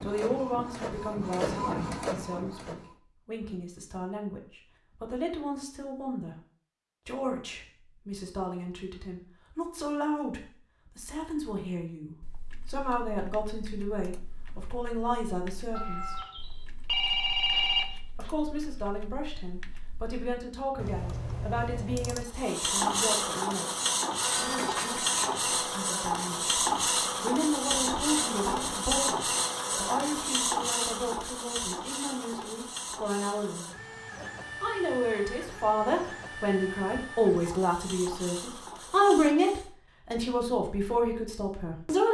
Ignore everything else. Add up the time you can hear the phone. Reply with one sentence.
The phone can be heard for 3 seconds in total.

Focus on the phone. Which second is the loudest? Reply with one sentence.
The volume of the phone peaks at 18 seconds.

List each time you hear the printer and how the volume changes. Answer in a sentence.
The printer can be heard briefly from 0.0 to 3.0 s; and from 22.2 to 39.7 s, getting quieter.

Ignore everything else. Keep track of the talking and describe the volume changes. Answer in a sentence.
The volume of the talking goes up.